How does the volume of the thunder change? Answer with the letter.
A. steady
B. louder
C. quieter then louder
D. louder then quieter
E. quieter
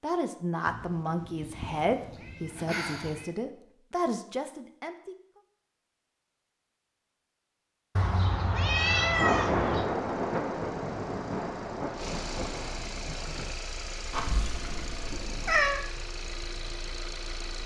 E.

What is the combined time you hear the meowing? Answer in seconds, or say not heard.
6 s.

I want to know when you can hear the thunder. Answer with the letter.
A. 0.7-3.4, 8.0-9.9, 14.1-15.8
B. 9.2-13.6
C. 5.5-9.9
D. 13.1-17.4
B.